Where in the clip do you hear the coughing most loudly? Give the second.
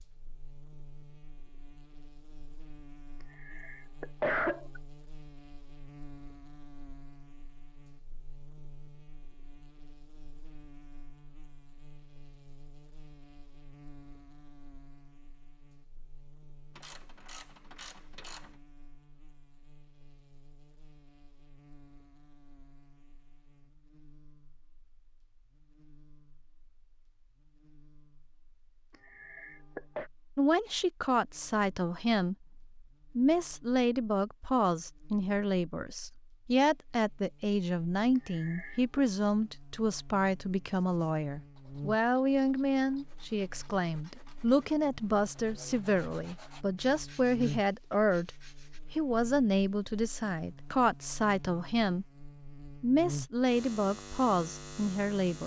4 s.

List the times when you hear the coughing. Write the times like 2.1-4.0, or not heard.
3.2-4.8, 28.9-30.1, 38.1-39.0.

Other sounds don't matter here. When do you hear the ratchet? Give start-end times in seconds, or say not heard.
16.8-18.6.